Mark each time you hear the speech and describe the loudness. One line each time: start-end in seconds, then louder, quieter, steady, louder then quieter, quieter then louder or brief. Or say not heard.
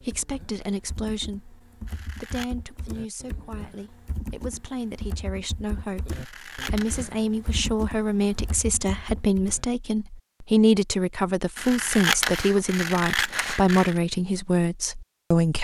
0.0-15.5 louder.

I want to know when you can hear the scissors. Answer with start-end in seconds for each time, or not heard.
1.9-2.5, 6.1-7.2, 11.6-14.0.